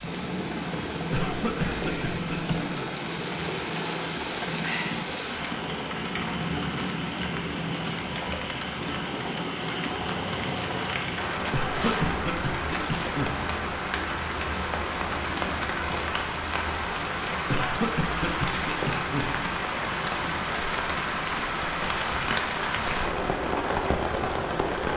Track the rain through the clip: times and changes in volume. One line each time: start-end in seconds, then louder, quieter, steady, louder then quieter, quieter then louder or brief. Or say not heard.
0.0-24.9 louder.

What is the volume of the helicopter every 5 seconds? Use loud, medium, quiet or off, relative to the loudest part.
loud, loud, medium, medium, off.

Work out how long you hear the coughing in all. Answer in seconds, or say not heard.
5 s.